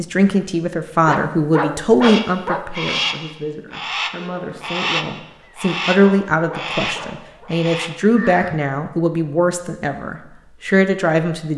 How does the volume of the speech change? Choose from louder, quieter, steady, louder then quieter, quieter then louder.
quieter then louder.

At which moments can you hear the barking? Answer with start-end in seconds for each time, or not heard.
1.1-2.6, 6.0-7.5.